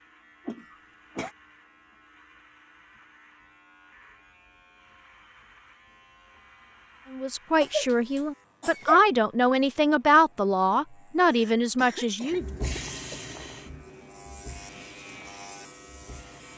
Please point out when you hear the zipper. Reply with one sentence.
The zipper can't be heard in this clip.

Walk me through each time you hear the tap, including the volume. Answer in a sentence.
You can hear the tap from 12.3 to 16.5 s, getting quieter.